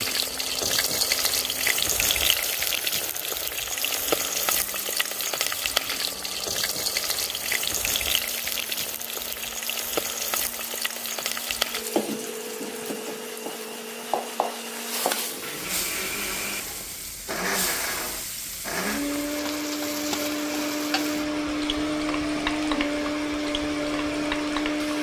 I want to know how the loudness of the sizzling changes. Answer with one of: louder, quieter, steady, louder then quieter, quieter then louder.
quieter.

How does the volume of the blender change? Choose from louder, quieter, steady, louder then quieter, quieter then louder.
louder.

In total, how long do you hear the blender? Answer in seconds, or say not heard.
25 s.